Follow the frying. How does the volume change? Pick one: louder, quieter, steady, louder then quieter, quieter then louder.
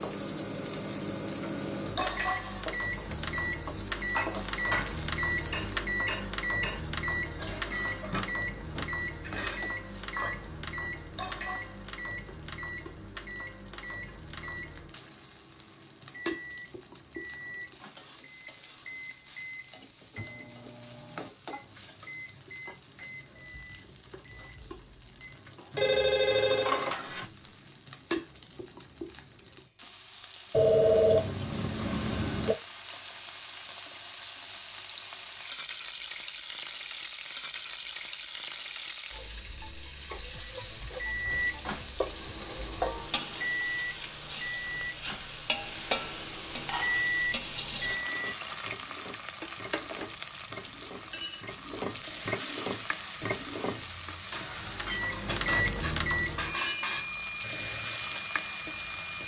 louder.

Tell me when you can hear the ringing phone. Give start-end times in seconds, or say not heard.
25.8-27.2, 30.5-32.5.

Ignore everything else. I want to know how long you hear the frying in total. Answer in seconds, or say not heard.
59 s.